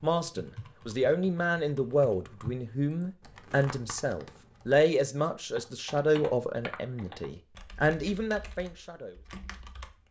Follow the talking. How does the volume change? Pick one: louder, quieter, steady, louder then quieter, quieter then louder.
steady.